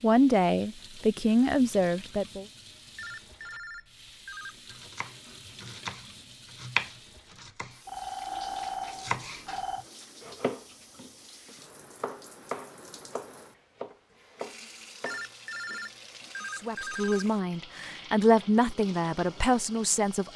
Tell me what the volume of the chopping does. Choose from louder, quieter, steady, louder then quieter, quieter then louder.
louder then quieter.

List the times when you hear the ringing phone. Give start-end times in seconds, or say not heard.
3.0-4.8, 7.8-9.8, 15.1-17.2.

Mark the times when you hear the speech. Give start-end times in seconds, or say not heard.
0.0-2.5, 16.6-20.3.